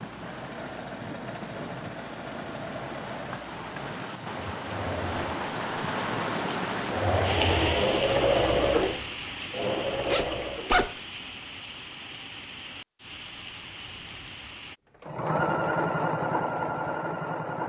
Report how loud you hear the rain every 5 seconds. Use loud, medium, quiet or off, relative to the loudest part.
medium, loud, medium, off.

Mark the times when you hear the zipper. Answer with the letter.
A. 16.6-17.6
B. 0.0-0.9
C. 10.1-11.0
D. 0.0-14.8
C.